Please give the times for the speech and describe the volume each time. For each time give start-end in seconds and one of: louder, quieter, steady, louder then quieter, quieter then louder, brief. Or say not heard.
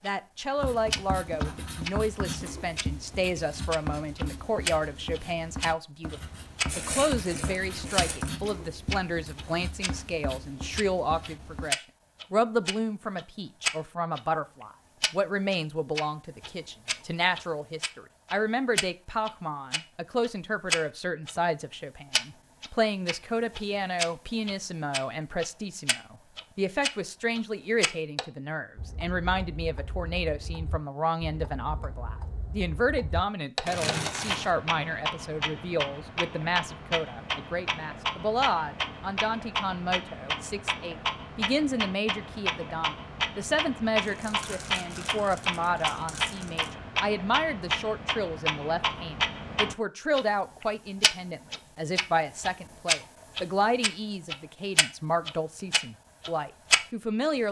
0.0-57.4 steady.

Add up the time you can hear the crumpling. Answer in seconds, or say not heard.
5 s.